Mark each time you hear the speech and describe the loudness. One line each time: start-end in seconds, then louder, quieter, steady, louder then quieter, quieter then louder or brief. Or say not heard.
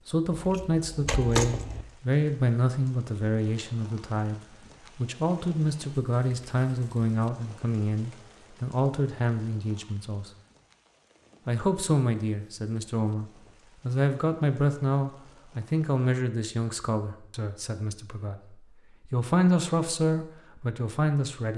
0.1-10.3 steady
11.4-21.5 quieter then louder.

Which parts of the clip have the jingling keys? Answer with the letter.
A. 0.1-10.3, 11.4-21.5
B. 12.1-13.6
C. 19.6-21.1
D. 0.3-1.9
D.